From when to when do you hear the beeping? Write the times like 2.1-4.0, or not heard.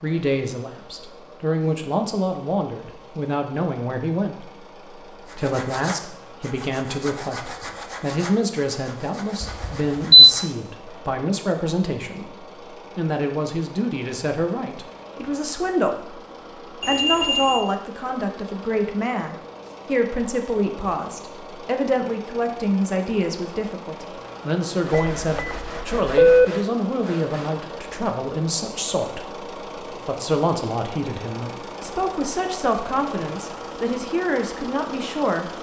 9.4-10.3, 16.8-17.6, 24.9-26.4.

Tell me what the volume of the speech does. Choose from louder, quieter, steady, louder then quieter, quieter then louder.
steady.